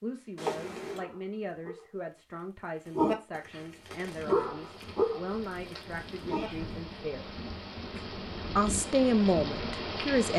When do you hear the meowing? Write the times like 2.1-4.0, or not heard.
0.3-1.1, 6.2-6.8.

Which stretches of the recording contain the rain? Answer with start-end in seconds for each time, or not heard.
3.7-10.3.